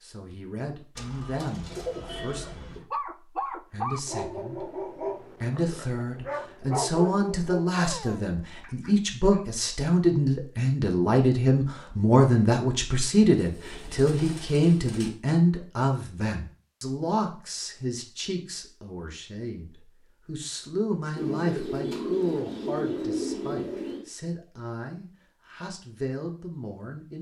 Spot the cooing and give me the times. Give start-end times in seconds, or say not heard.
0.9-2.8, 13.3-15.1, 21.1-24.1.